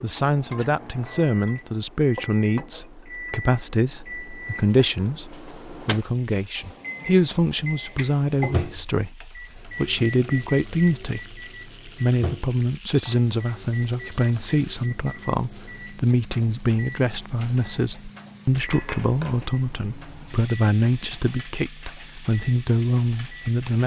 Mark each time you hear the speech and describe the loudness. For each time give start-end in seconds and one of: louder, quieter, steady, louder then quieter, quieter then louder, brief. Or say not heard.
0.0-23.8 steady.